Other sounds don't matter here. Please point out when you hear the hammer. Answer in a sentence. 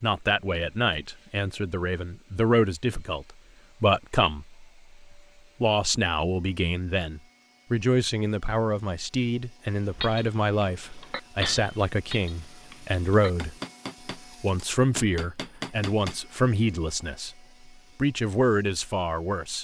The hammer can be heard from 9.9 to 16.4 s.